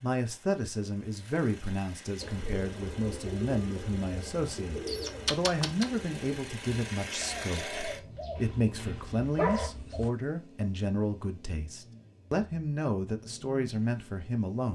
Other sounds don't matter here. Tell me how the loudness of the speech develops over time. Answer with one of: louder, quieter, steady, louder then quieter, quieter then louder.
steady.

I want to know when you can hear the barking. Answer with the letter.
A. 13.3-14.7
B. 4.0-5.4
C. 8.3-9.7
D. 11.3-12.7
C.